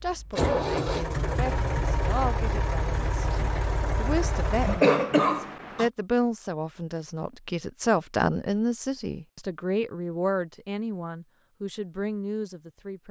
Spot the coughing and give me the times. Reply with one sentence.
The coughing can be heard from 4.7 to 5.9 s.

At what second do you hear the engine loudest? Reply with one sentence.
The volume of the engine peaks at 1 second.